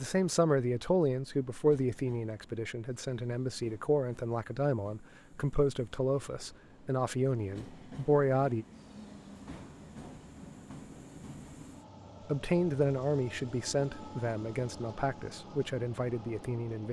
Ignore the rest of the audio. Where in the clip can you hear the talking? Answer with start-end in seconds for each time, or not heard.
0.0-8.7, 12.2-16.8.